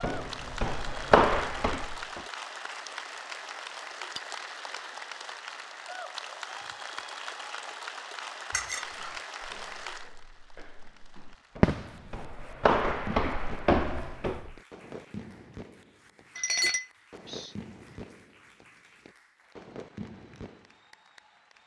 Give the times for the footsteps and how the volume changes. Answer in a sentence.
The footsteps can be heard briefly from 0.0 to 2.2 s; and from 8.8 to 14.6 s, getting louder.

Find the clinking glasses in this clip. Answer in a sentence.
The clinking glasses can be heard from 8.5 to 9.1 s and from 16.4 to 17.5 s.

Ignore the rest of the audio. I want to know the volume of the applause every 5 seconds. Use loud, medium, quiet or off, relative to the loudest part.
loud, loud, quiet, quiet, quiet.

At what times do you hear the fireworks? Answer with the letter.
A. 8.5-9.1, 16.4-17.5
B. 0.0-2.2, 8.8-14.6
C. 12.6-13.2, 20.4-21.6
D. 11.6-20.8
D.